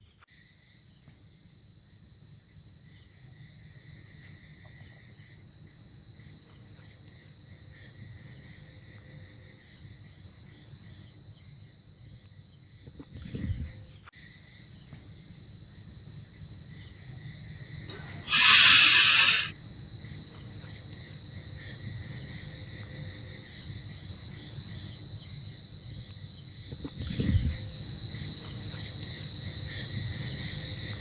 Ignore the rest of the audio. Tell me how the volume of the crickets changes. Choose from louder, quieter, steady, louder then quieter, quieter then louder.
louder.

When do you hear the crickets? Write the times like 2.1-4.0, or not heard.
0.0-30.9.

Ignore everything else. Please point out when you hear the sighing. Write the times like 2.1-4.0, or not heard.
17.9-19.5.